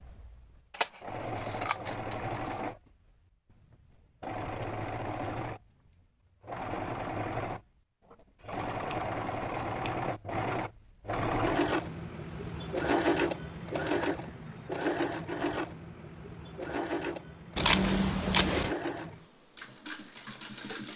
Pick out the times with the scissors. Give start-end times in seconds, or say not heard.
0.7-2.5, 8.4-9.9, 17.6-18.8.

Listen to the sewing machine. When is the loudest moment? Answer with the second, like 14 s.
13 s.